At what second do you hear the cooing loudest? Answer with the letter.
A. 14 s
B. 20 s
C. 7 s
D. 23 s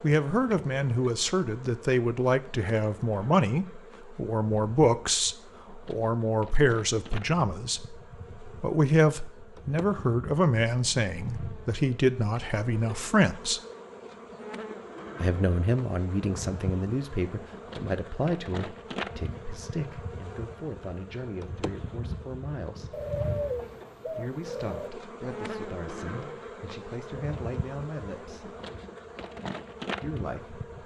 D.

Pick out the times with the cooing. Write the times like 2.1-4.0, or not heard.
22.9-24.9.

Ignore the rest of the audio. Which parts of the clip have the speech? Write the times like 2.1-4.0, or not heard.
0.0-13.6, 15.2-23.1, 24.1-28.6, 30.0-30.6.